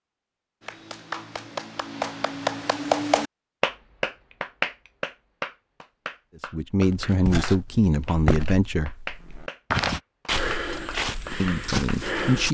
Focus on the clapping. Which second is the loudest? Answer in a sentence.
The volume of the clapping peaks at 3 seconds.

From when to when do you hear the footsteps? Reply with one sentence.
You can hear the footsteps from 6.8 to 12.4 s.